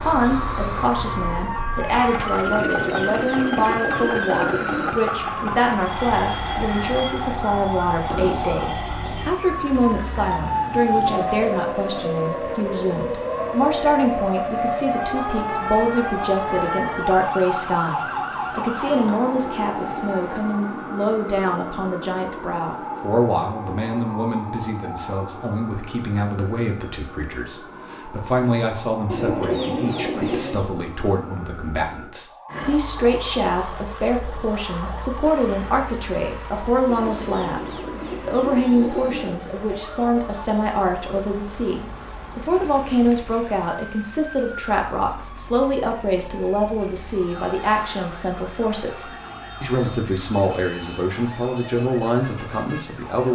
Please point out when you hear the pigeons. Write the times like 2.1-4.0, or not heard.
2.5-5.0, 29.1-30.7, 36.9-39.4.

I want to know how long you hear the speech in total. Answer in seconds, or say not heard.
53 s.